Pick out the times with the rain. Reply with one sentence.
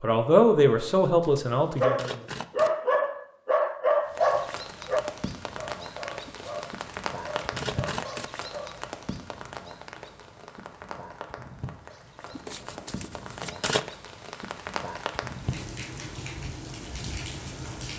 The rain can be heard from 4.0 to 17.9 s.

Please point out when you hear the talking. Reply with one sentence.
The talking can be heard from 0.0 to 2.2 s.